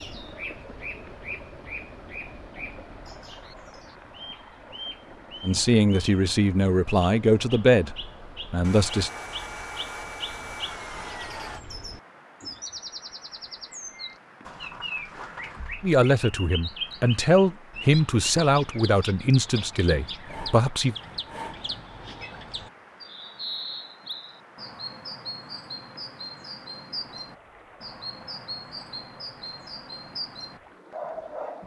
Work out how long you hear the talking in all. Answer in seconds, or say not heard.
9 s.